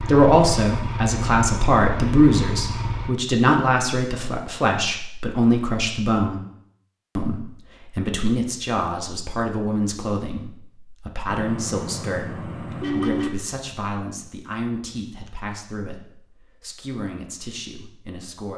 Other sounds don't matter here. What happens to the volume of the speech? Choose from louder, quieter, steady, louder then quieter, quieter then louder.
quieter.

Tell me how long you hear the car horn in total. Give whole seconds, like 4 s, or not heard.
2 s.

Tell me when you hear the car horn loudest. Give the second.
13 s.